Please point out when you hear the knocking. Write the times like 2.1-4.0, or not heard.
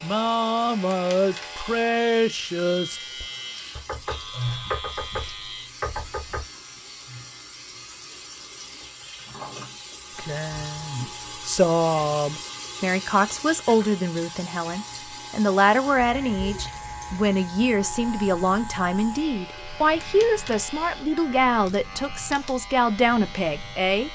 3.8-6.5.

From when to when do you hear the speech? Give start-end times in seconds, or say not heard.
0.0-3.2, 10.2-24.0.